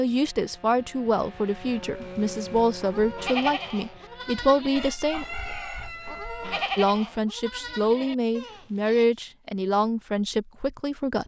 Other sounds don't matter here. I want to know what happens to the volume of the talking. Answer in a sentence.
The loudness of the talking stays about the same.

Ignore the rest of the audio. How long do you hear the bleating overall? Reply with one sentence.
The bleating can be heard for 6 seconds in total.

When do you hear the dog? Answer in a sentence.
You can't hear the dog here.